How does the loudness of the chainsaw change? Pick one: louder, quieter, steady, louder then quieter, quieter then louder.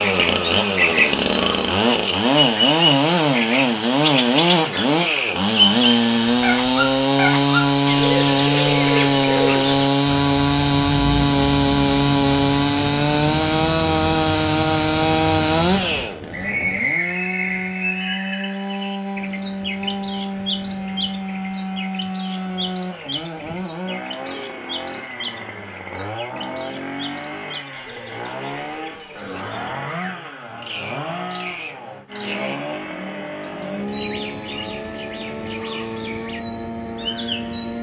quieter.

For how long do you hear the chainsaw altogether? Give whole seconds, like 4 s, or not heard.
38 s.